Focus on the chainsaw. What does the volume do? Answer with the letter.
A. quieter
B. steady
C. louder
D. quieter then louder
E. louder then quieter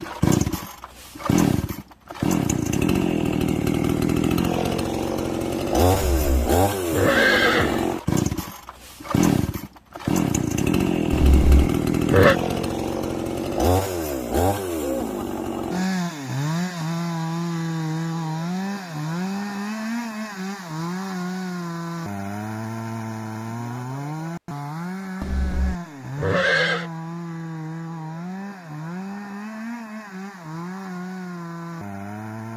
A.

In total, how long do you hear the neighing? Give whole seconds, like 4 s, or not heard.
5 s.